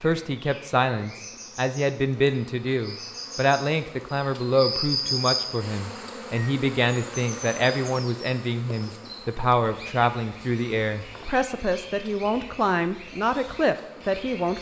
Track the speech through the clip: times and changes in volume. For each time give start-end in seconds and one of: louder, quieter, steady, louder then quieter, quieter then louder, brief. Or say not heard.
0.0-14.5 steady.